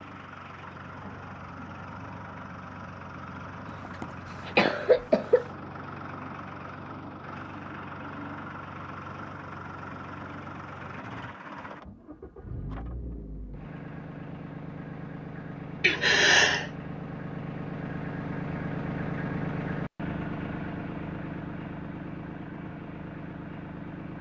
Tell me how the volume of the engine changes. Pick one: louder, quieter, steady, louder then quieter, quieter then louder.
louder.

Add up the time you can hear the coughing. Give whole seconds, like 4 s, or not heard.
3 s.